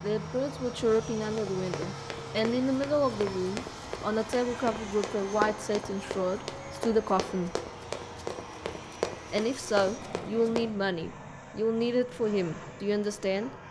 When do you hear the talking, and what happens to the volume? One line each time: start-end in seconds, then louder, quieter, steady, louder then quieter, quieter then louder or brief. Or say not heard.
0.0-7.5 steady
9.3-13.5 steady.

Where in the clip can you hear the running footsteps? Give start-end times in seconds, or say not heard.
1.4-10.7.